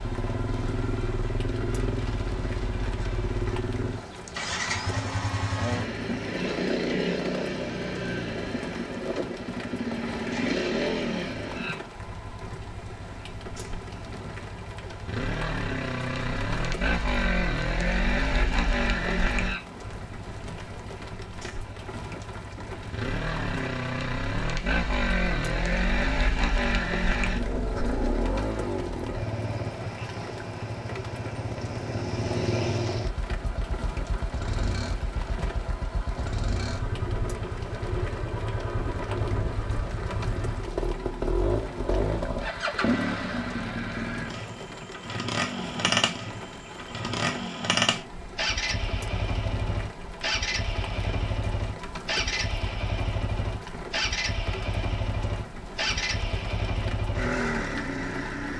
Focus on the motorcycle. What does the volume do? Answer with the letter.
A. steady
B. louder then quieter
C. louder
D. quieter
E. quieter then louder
A.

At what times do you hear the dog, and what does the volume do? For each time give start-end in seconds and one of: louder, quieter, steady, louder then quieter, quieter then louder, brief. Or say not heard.
not heard.